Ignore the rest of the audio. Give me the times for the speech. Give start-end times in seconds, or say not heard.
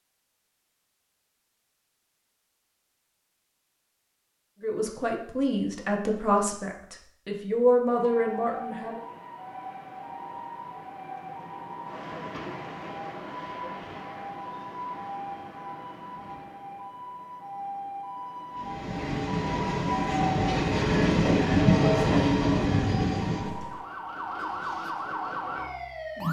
4.6-9.0.